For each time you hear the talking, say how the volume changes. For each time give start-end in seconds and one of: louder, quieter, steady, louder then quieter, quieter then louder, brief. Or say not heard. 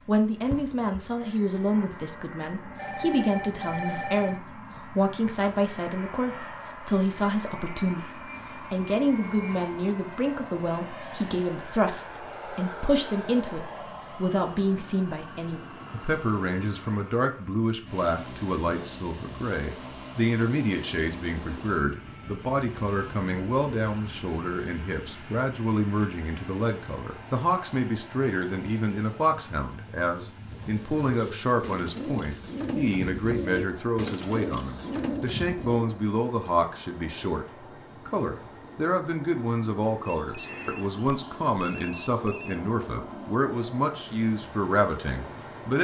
0.1-45.7 steady.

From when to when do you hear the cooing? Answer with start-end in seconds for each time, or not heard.
30.4-36.0.